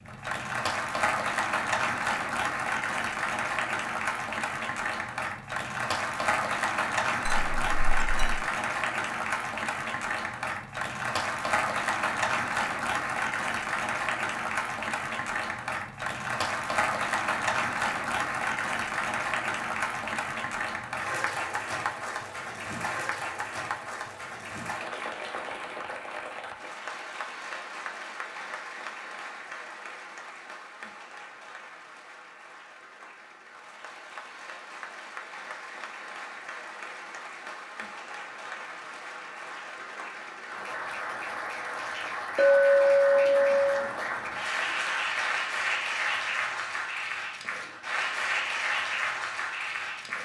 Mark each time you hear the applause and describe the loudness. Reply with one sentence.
The applause can be heard from 0.0 to 50.2 s, getting quieter then louder.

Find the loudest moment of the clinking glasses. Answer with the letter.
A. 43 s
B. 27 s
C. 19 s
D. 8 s
A.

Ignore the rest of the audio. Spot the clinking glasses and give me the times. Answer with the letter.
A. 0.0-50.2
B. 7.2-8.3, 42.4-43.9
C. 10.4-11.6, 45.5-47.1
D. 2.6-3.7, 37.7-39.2
B.